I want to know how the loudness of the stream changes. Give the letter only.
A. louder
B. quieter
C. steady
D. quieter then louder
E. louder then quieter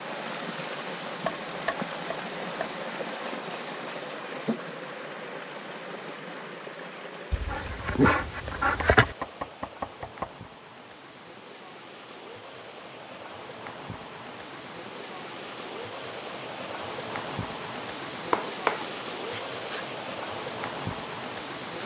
D.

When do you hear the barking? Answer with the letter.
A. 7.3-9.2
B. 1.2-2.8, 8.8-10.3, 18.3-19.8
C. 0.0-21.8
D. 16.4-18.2
A.